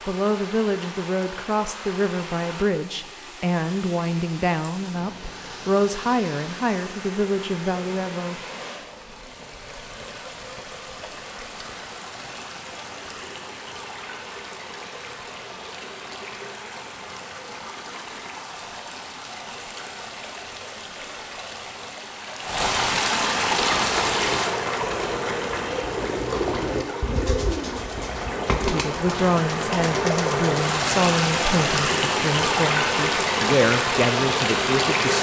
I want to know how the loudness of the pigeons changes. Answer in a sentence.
The loudness of the pigeons goes up, then down.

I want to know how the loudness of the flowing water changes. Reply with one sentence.
The loudness of the flowing water goes up.